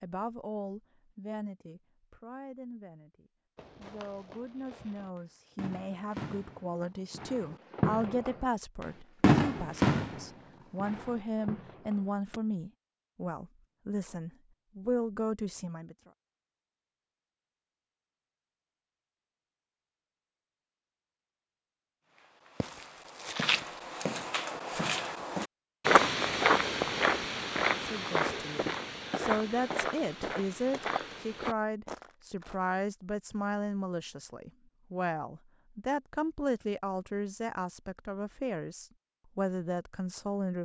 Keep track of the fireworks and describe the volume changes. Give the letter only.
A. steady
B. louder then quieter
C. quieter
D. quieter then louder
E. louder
B.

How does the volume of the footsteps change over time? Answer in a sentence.
The volume of the footsteps goes up, then down.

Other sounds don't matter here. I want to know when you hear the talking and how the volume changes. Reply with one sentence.
The talking can be heard from 0.0 to 15.9 s, getting louder; and from 27.9 to 40.6 s, at a steady volume.